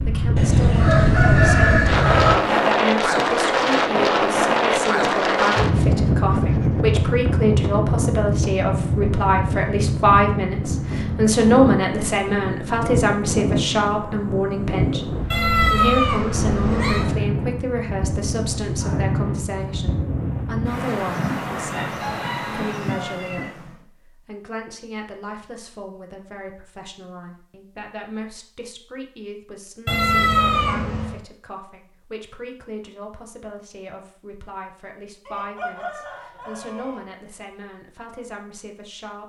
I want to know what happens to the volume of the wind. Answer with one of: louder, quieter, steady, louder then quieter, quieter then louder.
quieter.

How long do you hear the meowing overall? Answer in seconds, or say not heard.
3 s.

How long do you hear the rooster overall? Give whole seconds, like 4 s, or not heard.
6 s.